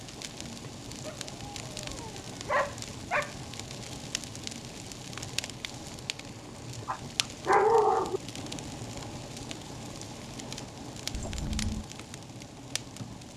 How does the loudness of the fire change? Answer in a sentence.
The volume of the fire stays about the same.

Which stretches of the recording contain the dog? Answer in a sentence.
The dog can be heard from 1.1 to 3.4 s and from 6.8 to 8.2 s.